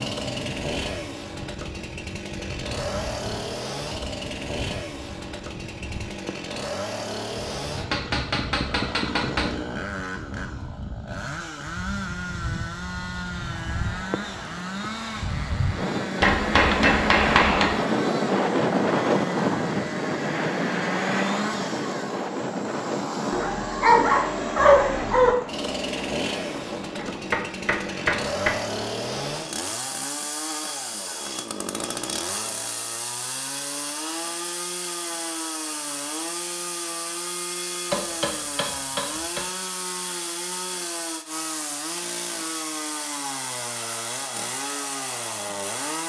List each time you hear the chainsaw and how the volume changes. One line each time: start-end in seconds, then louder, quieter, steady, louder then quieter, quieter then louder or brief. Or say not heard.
0.0-46.0 steady.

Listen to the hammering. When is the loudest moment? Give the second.
17 s.